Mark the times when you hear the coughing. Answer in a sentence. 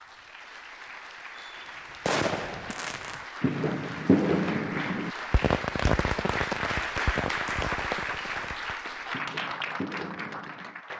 The coughing can't be heard in this clip.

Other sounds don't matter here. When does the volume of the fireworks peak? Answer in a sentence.
The loudest moment of the fireworks is at 4 seconds.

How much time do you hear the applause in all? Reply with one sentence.
You can hear the applause for 11 seconds altogether.